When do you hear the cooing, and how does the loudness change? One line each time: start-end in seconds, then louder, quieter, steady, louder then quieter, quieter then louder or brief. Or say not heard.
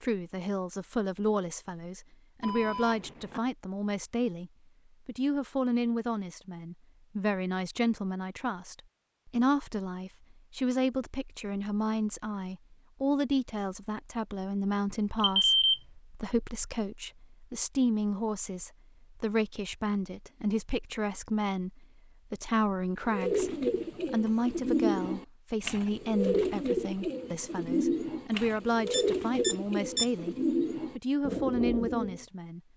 23.1-32.2 steady.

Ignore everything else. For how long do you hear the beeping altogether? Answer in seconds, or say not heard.
3 s.